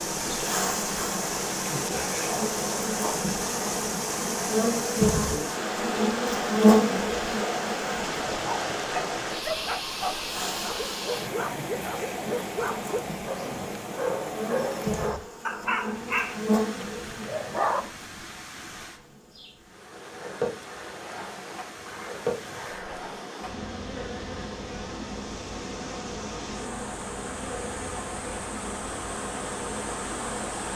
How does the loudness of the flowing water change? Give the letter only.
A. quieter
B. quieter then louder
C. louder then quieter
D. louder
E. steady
B.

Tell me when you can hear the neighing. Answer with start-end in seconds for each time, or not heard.
21.9-23.1.